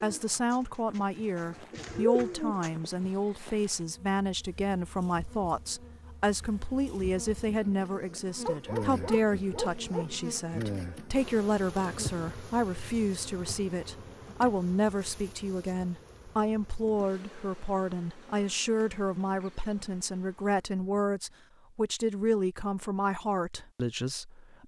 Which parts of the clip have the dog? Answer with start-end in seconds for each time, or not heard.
8.4-10.2.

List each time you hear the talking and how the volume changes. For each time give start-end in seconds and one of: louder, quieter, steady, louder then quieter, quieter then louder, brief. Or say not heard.
0.0-24.6 steady.